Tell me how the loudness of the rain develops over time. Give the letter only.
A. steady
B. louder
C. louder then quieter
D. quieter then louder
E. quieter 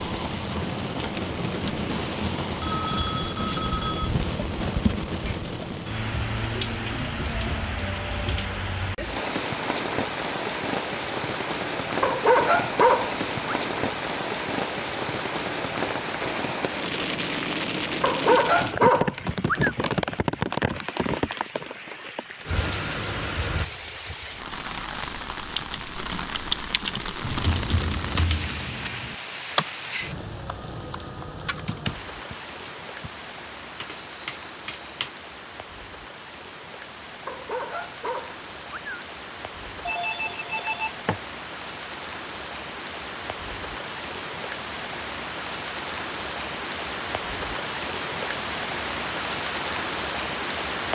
D.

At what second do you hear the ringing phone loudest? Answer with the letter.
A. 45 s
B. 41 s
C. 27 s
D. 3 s
D.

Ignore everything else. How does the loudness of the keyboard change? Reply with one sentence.
The volume of the keyboard goes down.